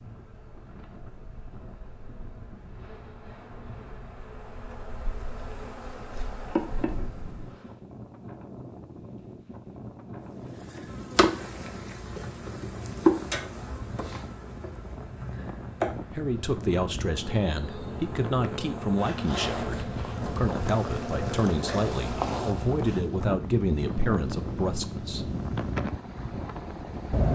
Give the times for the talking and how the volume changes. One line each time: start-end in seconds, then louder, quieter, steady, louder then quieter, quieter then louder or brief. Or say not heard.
16.1-25.4 steady.